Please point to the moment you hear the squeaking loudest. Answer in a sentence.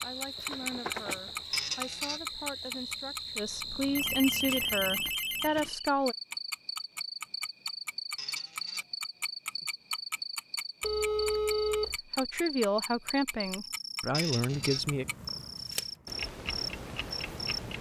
The loudest moment of the squeaking is at 2 seconds.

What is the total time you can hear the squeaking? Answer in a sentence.
You can hear the squeaking for 2 seconds altogether.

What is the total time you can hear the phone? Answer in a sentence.
The phone can be heard for 3 seconds in total.